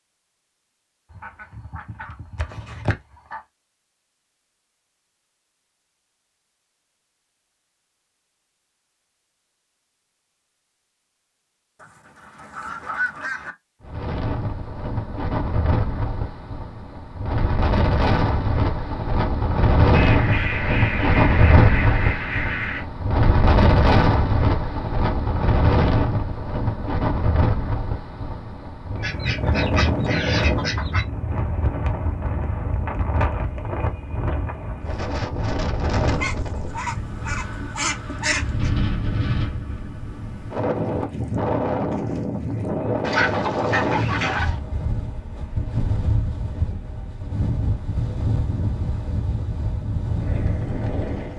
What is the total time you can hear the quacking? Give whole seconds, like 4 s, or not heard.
13 s.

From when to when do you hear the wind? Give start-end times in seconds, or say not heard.
13.8-51.3.